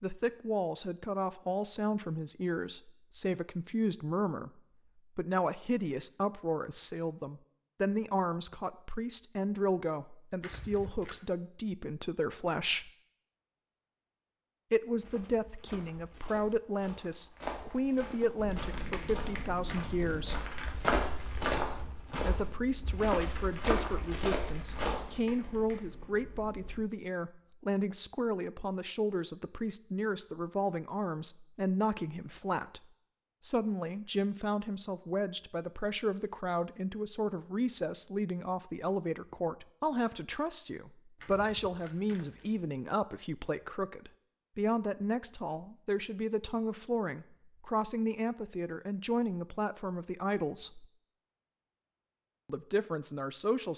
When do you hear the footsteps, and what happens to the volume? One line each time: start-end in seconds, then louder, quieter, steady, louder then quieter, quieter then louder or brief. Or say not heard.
14.9-25.0 louder.